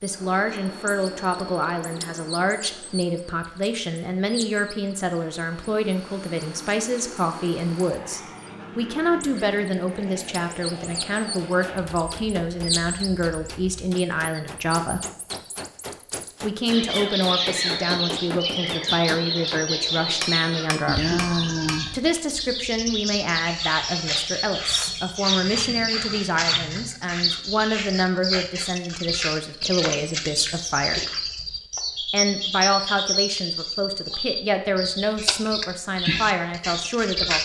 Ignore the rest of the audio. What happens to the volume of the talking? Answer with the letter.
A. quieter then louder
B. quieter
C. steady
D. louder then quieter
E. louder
C.